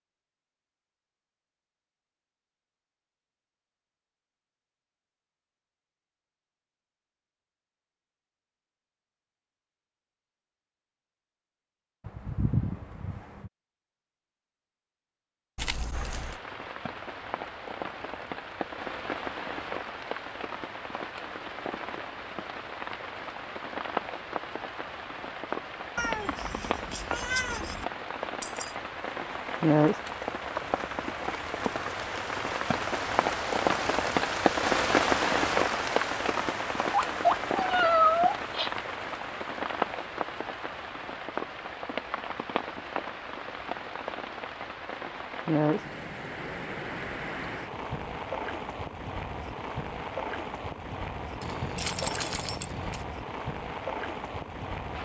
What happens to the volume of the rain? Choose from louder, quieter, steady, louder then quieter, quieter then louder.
louder then quieter.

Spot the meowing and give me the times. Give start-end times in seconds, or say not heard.
12.1-13.5, 25.9-27.9, 36.9-38.7.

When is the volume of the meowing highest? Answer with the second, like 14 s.
38 s.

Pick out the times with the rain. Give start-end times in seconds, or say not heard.
15.9-55.0.